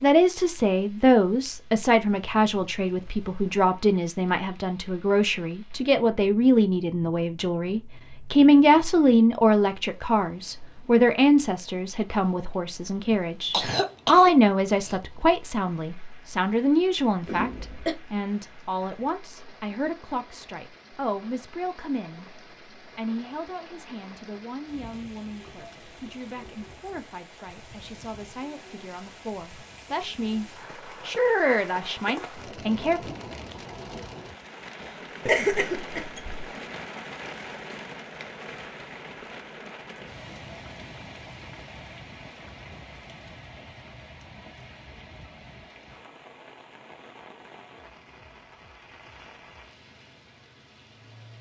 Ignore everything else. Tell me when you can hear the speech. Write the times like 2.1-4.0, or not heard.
0.0-33.0.